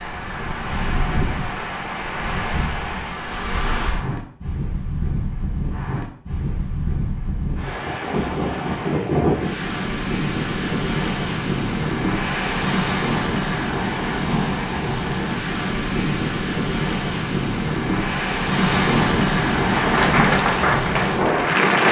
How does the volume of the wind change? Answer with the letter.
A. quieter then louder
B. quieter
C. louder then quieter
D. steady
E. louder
E.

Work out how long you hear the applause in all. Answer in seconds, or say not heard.
2 s.